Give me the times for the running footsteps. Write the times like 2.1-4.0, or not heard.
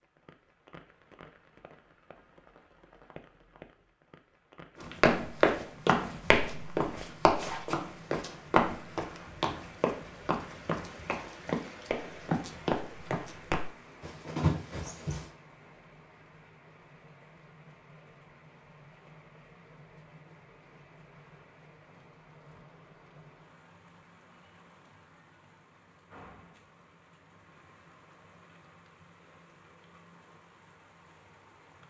4.8-15.2.